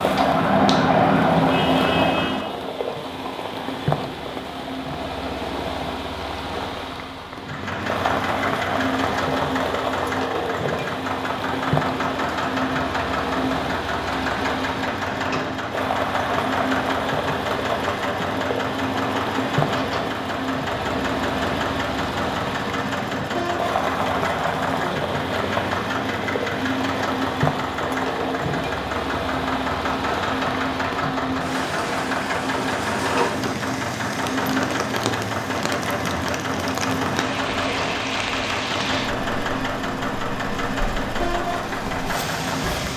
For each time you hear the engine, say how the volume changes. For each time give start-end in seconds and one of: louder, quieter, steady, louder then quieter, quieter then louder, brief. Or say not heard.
7.3-42.9 steady.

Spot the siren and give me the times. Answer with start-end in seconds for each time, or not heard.
0.0-2.5.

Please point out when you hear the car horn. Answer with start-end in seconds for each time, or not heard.
not heard.